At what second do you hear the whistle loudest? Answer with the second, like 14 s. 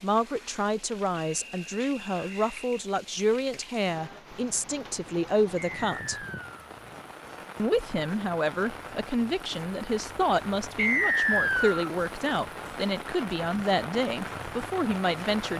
11 s.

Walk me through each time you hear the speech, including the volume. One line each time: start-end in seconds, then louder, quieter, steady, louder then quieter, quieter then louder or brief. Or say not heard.
0.0-6.2 steady
7.5-15.5 steady.